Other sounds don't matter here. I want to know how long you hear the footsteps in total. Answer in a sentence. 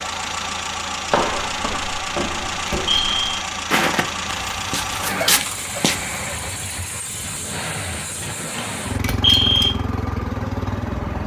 You can hear the footsteps for 5 seconds altogether.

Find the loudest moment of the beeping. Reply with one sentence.
The loudest moment of the beeping is at 9 seconds.